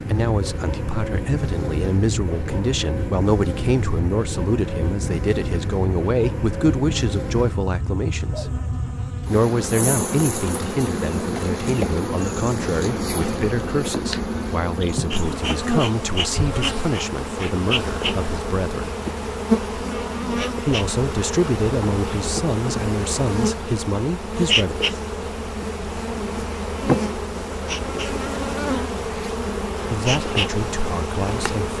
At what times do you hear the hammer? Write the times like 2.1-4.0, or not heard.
not heard.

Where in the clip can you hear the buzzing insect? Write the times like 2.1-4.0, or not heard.
0.0-31.7.